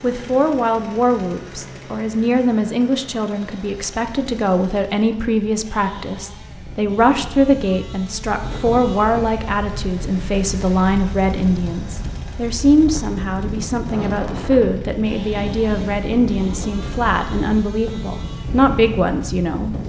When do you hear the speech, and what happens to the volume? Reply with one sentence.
You can hear the speech from 0.0 to 19.8 s, at a steady volume.